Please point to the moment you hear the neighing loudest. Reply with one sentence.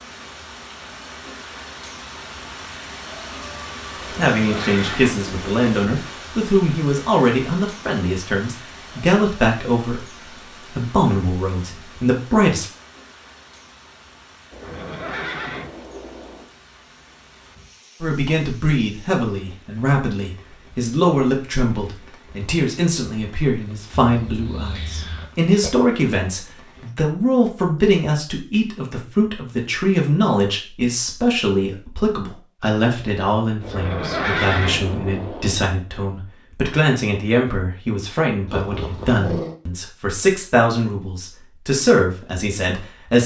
The volume of the neighing peaks at 34 seconds.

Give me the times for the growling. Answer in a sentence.
You can hear the growling from 38.5 to 39.5 s.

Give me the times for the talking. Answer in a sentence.
The talking can be heard from 4.2 to 12.7 s and from 18.0 to 43.2 s.